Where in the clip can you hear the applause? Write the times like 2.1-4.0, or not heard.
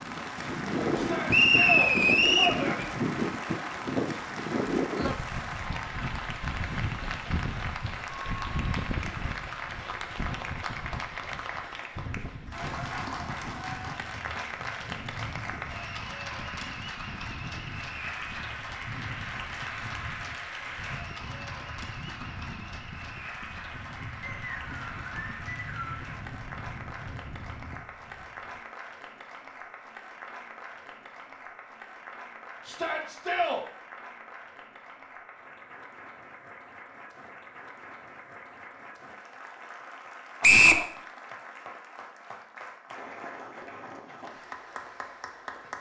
0.0-45.7.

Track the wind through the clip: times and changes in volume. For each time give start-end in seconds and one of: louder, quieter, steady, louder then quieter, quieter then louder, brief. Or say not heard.
0.0-28.6 quieter.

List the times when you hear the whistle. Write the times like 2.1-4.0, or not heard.
1.3-2.5, 24.2-26.0, 40.4-40.9.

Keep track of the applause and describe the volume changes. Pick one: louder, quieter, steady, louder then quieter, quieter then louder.
quieter.